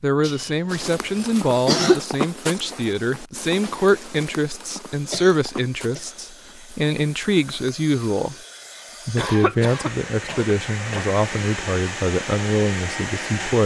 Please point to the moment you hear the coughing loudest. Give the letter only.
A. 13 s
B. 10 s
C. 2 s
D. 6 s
C.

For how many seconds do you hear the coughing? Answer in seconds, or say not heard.
5 s.